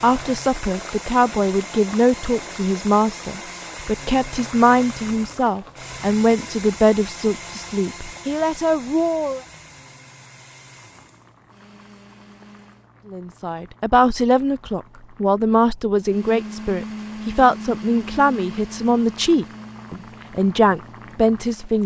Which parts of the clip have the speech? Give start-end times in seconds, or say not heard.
0.0-9.4, 13.1-21.8.